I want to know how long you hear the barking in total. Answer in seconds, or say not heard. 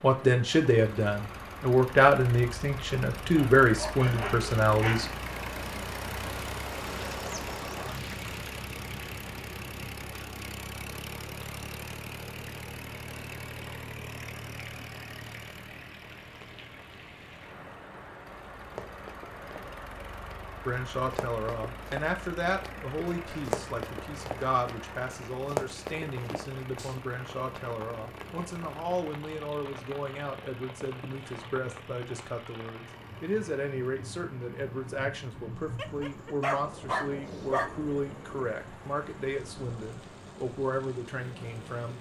4 s.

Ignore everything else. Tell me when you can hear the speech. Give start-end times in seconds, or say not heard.
0.0-5.1, 20.6-41.9.